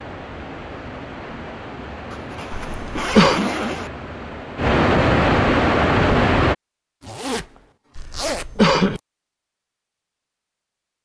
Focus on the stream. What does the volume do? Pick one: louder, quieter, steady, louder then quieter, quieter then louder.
louder.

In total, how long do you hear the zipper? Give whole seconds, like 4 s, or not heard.
4 s.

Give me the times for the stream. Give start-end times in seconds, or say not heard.
0.0-6.5.